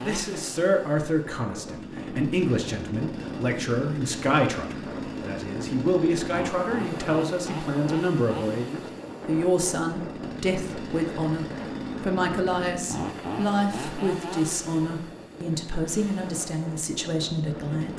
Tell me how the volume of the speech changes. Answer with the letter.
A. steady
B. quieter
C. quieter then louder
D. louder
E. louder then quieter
A.